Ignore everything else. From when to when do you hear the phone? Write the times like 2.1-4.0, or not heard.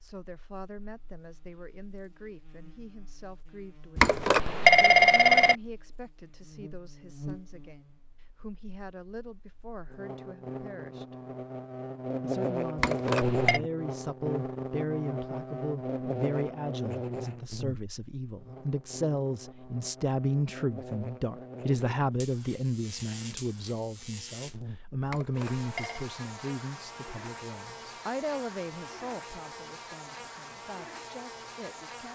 4.0-5.5, 12.8-13.6, 25.1-26.1.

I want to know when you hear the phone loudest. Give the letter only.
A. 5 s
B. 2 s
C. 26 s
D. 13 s
A.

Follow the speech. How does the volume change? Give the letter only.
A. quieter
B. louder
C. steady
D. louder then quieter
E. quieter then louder
D.